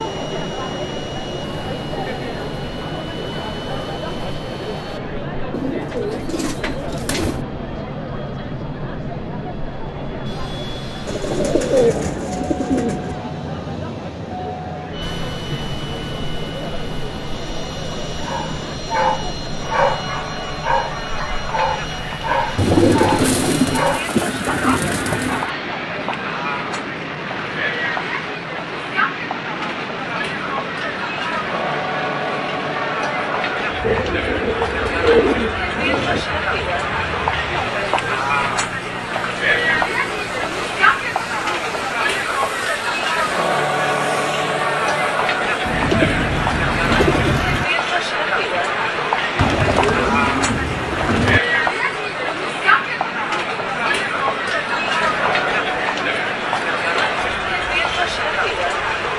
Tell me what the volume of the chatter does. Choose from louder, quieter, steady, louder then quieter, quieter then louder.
louder.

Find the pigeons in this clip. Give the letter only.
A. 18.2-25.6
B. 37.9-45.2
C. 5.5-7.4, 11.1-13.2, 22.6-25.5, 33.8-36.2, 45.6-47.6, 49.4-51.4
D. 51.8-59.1
C.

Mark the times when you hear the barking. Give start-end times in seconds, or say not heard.
18.2-25.6.